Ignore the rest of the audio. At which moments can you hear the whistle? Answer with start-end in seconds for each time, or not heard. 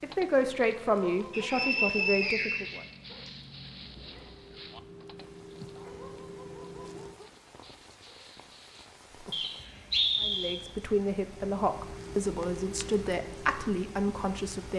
1.3-3.3, 9.3-10.6.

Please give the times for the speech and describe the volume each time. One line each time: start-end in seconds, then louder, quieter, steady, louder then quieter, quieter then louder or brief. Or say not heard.
0.0-2.8 brief
10.2-14.7 steady.